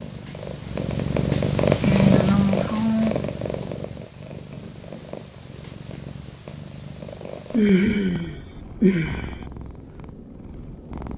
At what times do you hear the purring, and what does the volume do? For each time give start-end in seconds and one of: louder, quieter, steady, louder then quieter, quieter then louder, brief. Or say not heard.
0.0-11.1 quieter.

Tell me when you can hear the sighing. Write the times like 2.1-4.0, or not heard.
1.8-3.1, 7.5-9.3.